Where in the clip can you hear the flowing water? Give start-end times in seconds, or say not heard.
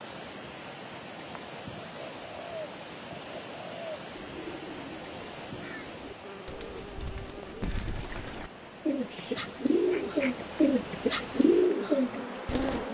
0.0-12.8.